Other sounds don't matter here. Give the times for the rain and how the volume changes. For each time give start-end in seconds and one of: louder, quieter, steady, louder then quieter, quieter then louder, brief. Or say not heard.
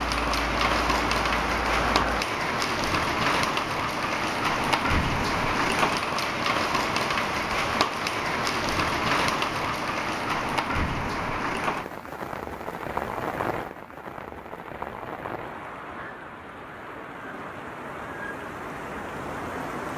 0.0-19.9 quieter.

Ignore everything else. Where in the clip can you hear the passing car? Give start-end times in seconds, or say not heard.
0.1-2.2.